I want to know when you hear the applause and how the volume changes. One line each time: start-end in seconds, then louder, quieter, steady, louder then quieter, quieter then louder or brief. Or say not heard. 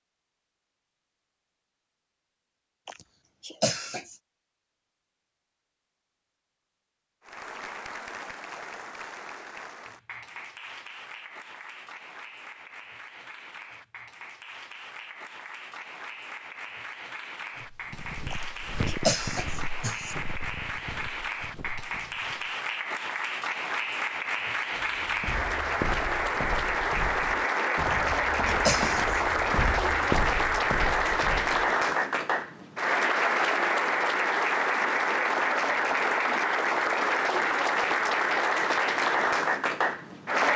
7.2-40.5 louder.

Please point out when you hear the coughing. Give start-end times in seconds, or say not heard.
2.9-4.2, 18.3-20.1, 27.9-29.2.